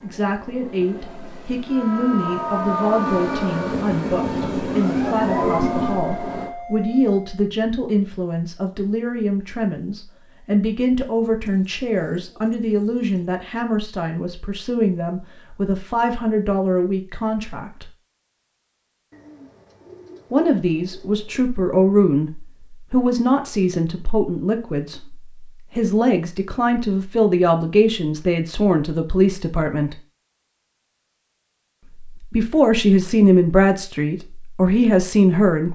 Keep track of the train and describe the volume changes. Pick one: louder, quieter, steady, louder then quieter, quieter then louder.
louder.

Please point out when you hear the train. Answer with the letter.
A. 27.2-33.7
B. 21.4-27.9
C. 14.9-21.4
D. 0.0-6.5
D.